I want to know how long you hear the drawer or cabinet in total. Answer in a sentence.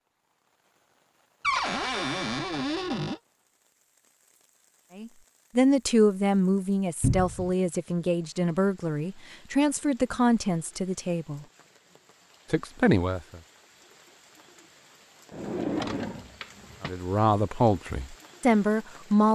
You can hear the drawer or cabinet for 4 seconds altogether.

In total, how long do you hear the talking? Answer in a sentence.
You can hear the talking for 10 seconds altogether.